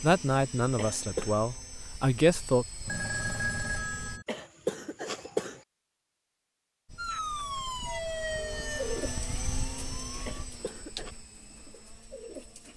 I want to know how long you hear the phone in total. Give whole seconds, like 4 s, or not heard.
3 s.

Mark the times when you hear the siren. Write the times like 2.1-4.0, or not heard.
7.0-10.4.